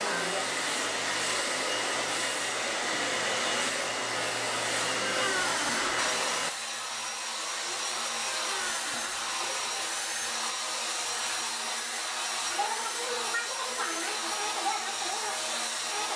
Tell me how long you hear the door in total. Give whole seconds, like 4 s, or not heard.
2 s.